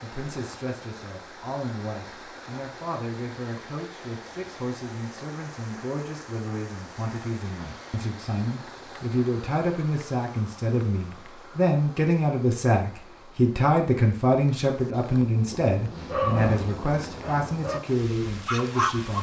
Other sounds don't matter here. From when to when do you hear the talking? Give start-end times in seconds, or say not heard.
0.0-19.1.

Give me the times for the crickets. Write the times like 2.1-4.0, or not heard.
not heard.